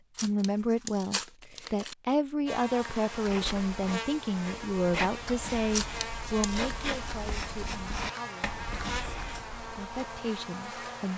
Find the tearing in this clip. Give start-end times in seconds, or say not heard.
0.1-1.9, 5.7-6.7.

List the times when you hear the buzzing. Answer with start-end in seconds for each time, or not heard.
2.5-11.1.